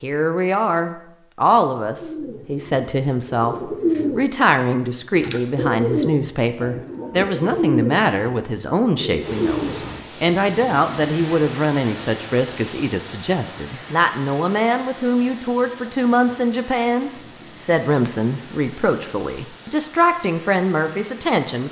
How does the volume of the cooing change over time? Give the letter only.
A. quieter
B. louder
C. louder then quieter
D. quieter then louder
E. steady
C.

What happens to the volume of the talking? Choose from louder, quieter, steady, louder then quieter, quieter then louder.
steady.